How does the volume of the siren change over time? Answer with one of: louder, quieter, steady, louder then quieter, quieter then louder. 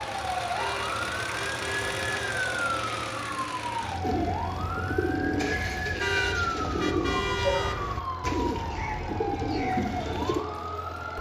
steady.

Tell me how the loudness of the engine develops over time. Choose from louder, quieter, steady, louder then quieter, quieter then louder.
quieter.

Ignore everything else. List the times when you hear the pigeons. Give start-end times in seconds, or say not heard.
4.0-10.4.